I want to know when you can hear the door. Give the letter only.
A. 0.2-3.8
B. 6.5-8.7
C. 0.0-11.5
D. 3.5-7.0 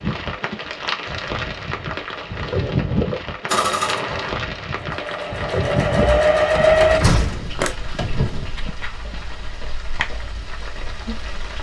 B.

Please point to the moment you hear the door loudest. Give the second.
7 s.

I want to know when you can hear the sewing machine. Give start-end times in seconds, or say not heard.
3.5-7.0.